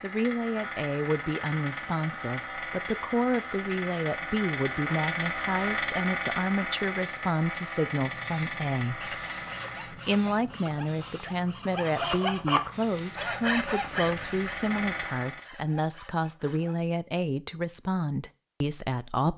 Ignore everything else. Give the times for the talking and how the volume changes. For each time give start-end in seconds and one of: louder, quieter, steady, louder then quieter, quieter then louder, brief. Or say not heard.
0.0-19.3 steady.